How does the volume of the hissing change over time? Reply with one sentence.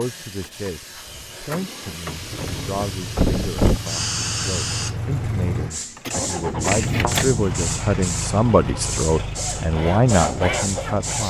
The loudness of the hissing goes up.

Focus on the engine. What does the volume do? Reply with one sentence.
The volume of the engine goes up, then down.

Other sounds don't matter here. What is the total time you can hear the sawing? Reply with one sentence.
The sawing can be heard for 3 seconds in total.